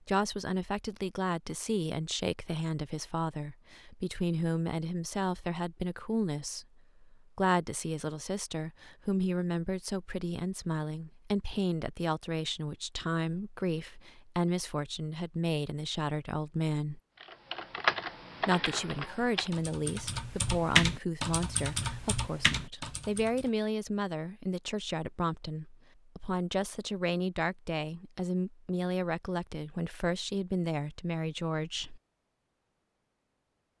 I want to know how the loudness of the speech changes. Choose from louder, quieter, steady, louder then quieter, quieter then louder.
steady.